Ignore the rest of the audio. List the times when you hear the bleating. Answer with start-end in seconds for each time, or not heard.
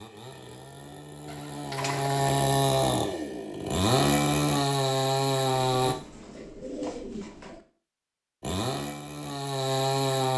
not heard.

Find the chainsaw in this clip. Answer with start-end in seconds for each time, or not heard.
0.0-6.0, 8.4-10.3.